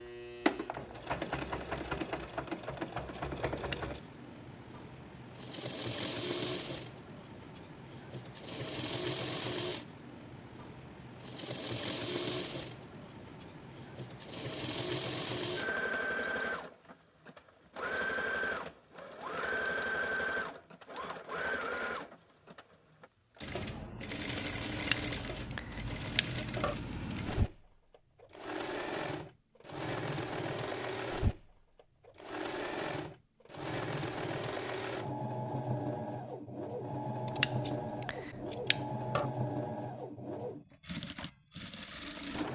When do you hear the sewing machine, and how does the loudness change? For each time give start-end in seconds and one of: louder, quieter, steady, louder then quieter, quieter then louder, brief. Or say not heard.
0.0-42.5 steady.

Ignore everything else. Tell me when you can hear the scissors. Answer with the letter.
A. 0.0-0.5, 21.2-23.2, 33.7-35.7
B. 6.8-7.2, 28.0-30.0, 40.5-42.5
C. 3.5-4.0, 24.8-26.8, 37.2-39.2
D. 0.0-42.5
C.